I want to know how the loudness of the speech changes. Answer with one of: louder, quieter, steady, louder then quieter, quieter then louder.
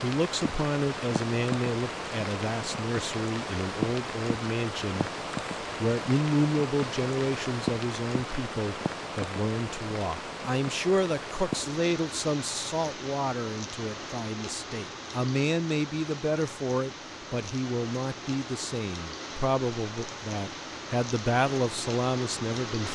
steady.